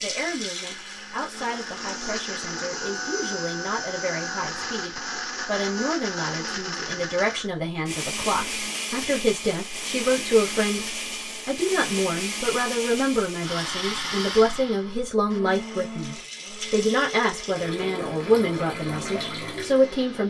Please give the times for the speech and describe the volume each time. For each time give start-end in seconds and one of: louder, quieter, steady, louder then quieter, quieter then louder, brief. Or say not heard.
0.0-20.2 louder.